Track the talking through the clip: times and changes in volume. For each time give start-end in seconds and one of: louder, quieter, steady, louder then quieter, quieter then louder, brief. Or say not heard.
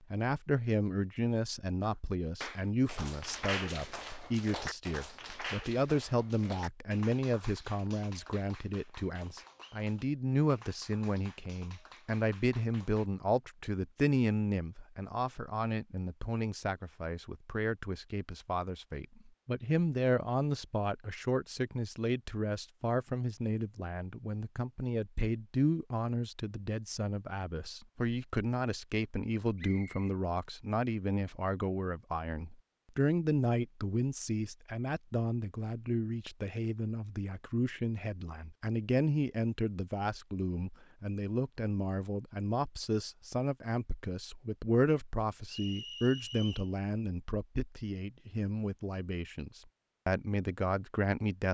0.1-51.4 steady.